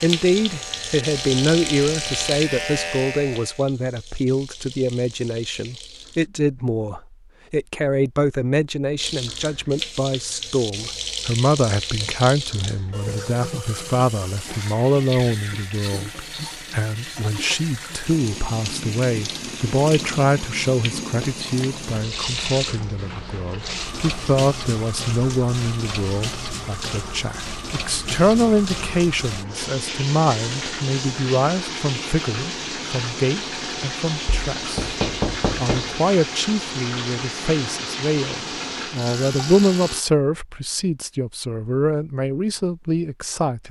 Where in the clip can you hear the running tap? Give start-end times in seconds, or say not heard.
0.0-6.3, 8.9-40.0.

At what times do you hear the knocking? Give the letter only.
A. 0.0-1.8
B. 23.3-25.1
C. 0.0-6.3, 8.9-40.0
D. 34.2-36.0
D.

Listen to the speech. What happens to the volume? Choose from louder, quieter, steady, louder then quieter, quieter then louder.
steady.